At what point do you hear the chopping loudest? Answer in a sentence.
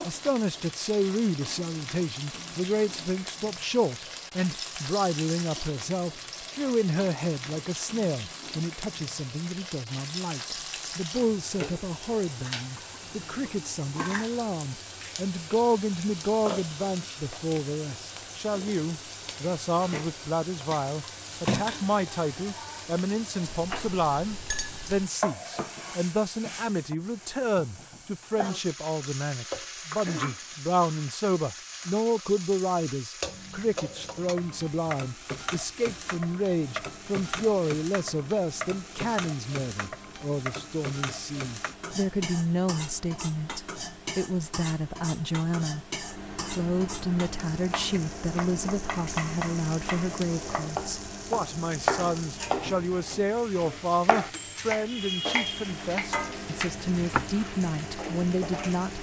The volume of the chopping peaks at 52 seconds.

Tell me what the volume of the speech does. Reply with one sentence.
The volume of the speech stays about the same.